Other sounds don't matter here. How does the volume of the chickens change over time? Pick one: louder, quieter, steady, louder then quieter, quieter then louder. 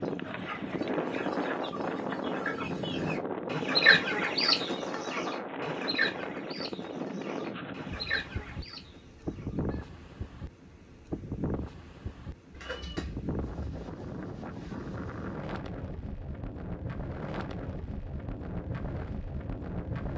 louder then quieter.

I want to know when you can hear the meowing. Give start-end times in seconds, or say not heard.
12.5-13.8.